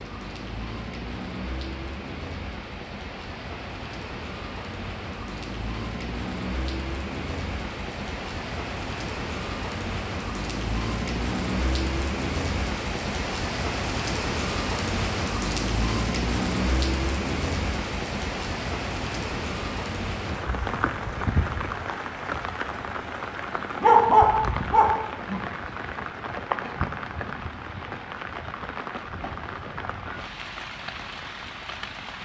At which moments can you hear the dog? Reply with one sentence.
You can hear the dog from 23.8 to 25.4 s.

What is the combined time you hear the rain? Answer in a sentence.
The rain can be heard for 32 seconds in total.